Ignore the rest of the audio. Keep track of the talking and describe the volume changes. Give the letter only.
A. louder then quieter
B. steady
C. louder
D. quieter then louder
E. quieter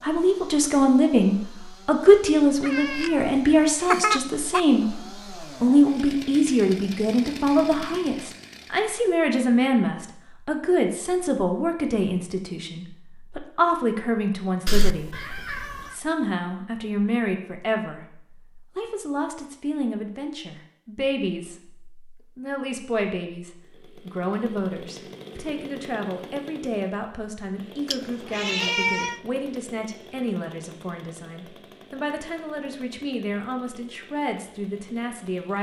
E.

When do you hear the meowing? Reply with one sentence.
The meowing can be heard from 2.6 to 4.6 s, from 14.7 to 15.9 s and from 27.9 to 29.2 s.